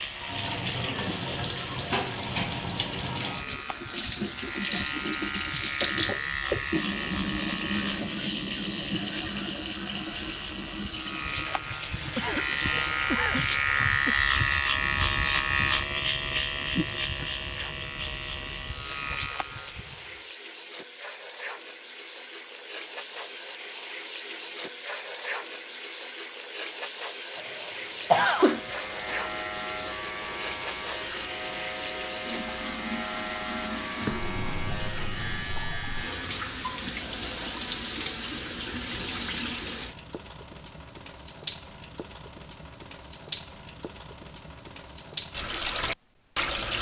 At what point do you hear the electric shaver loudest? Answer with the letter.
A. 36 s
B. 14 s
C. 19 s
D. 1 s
B.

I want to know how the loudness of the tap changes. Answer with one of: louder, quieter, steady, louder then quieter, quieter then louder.
quieter then louder.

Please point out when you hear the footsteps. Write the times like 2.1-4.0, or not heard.
not heard.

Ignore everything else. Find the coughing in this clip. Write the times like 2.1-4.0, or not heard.
12.2-14.2, 28.1-28.6.